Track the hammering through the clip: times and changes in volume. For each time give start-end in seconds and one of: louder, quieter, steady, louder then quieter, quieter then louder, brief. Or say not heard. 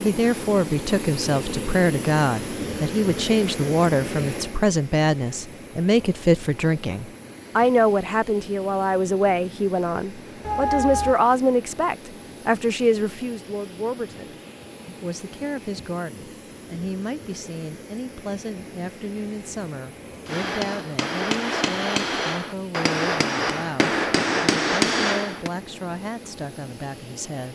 20.2-25.5 louder.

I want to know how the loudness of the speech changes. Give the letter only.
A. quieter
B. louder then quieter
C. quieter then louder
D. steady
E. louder
A.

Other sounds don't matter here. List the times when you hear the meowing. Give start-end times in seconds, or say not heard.
10.4-11.2.